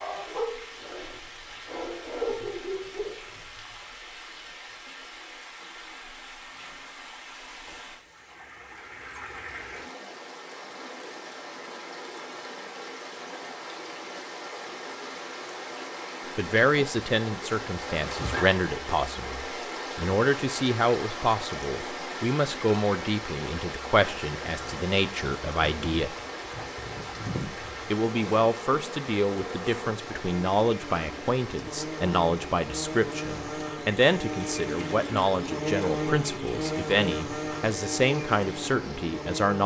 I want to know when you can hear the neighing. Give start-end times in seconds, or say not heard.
17.9-18.6.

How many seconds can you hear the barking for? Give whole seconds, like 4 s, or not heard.
3 s.